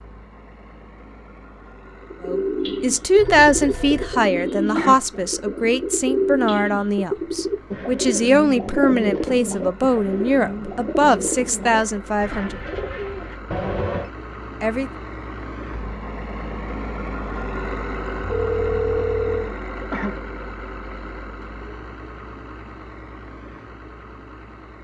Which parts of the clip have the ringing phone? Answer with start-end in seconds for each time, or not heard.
3.1-4.2, 13.5-14.1, 18.2-19.6.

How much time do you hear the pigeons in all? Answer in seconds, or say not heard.
11 s.